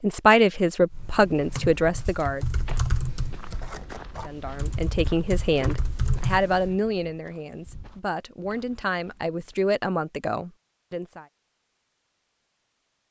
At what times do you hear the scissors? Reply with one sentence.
The scissors can be heard from 3.5 to 4.4 s.